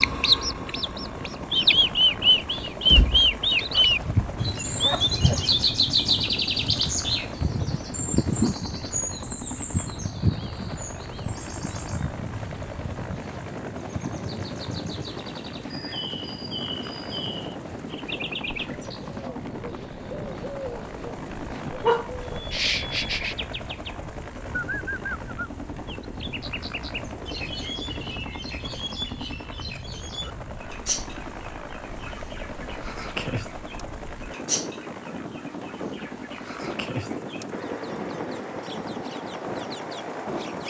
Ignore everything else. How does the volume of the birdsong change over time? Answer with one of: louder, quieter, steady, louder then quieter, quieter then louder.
quieter.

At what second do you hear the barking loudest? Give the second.
22 s.